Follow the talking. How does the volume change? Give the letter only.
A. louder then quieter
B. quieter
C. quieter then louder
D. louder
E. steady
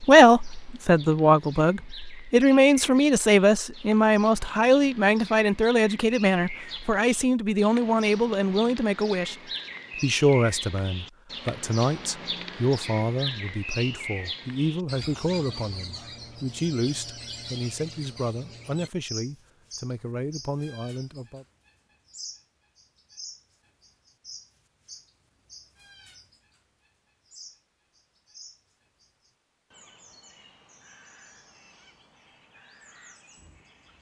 B.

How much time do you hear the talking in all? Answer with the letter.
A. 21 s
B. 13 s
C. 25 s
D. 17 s
A.